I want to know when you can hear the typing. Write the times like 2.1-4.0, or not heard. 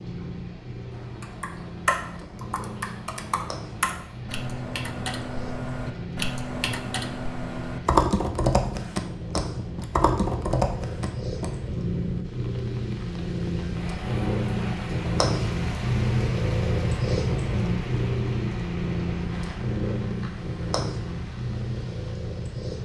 0.9-11.6.